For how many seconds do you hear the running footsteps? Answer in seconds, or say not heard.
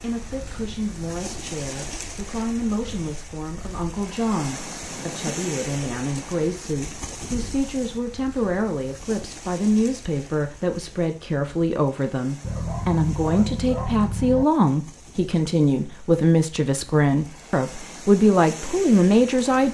not heard.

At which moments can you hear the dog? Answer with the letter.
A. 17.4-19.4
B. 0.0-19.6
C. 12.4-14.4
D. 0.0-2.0
C.